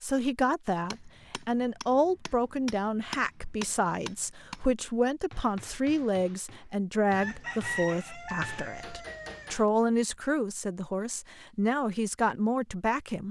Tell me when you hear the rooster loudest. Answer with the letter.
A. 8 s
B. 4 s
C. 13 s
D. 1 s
A.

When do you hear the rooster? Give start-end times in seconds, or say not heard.
7.2-9.6.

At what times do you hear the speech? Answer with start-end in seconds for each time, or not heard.
0.0-13.2.